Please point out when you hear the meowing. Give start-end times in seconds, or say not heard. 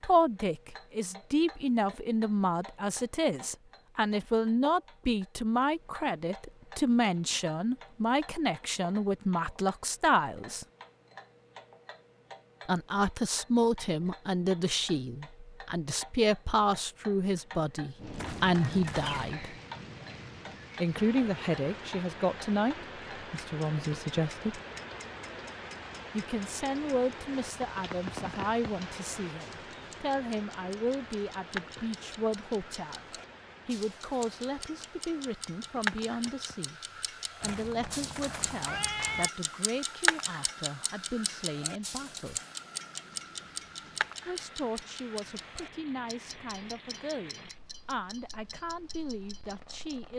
18.1-19.4, 37.4-39.3.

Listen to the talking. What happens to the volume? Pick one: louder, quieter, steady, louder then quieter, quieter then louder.
quieter.